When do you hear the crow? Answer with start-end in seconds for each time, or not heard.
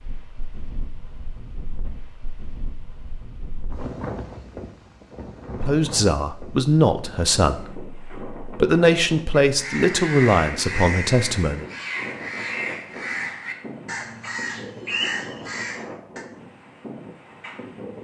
9.6-16.2.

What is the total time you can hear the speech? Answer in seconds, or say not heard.
6 s.